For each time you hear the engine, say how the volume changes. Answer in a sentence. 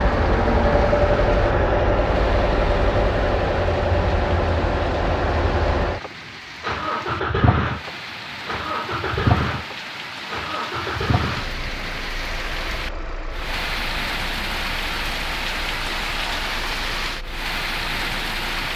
The engine can be heard from 0.0 to 18.7 s, getting quieter.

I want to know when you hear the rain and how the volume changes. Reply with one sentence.
You can hear the rain from 0.0 to 18.7 s, getting louder.